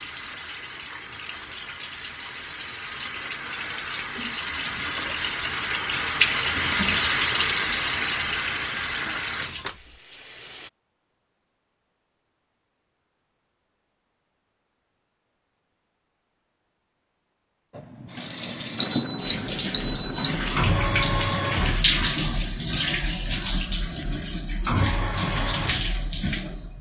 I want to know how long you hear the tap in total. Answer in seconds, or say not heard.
20 s.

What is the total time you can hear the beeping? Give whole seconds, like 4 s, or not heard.
2 s.